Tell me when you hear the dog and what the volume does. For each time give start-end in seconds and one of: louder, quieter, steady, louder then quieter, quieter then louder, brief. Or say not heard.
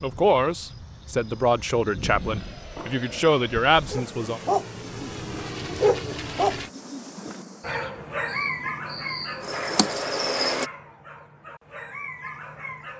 3.9-12.9 quieter.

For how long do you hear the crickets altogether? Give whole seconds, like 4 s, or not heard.
11 s.